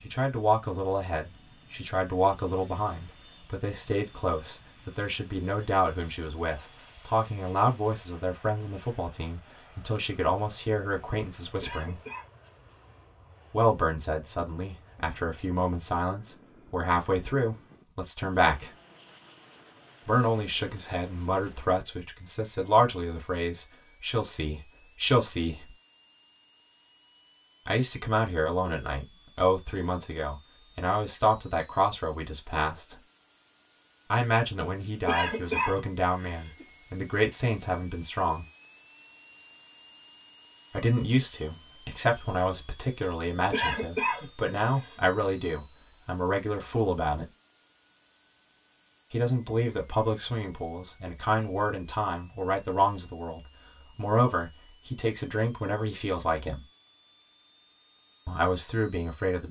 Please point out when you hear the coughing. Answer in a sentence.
The coughing can be heard from 11.6 to 12.2 s, from 35.0 to 36.6 s and from 43.5 to 45.0 s.